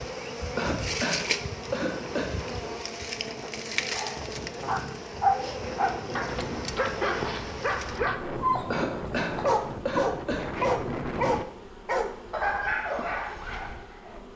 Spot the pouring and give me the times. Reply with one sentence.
The pouring can't be heard in this clip.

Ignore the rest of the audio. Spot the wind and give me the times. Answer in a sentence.
You can hear the wind from 0.0 to 11.4 s.